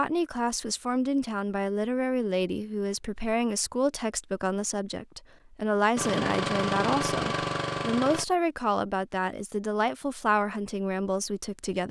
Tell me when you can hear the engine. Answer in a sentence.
The engine can be heard from 6.0 to 8.2 s.